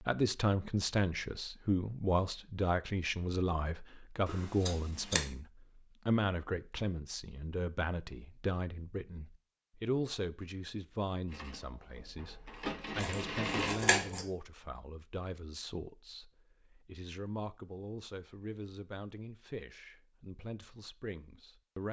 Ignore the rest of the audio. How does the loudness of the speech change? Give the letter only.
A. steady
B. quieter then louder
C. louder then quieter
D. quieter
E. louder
D.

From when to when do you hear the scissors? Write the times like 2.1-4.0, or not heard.
4.2-5.2, 13.0-14.2.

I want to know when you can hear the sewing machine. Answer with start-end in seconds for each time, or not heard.
11.3-13.8.